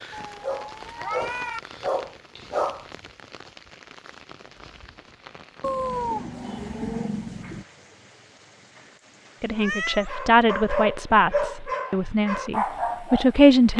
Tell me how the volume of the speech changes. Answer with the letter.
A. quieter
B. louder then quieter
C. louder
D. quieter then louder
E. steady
D.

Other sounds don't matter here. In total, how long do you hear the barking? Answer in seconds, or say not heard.
6 s.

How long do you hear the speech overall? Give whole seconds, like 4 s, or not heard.
4 s.